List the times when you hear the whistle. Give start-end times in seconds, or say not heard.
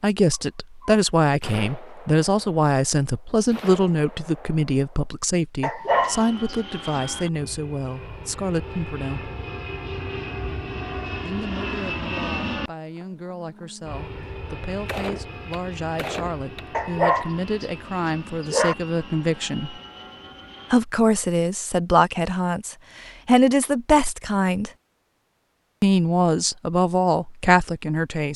not heard.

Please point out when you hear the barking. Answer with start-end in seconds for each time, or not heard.
5.6-7.0, 16.7-18.8.